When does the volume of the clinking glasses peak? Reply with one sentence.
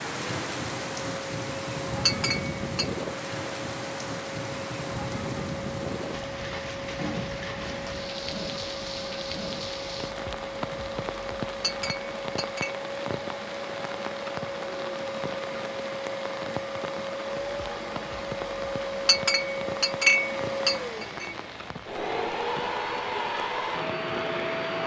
The volume of the clinking glasses peaks at 20 seconds.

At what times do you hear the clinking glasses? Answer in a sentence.
The clinking glasses can be heard from 2.0 to 2.9 s, from 11.6 to 12.8 s and from 19.1 to 21.4 s.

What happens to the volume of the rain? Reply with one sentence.
The volume of the rain goes down.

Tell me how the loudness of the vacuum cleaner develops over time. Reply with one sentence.
The volume of the vacuum cleaner goes up.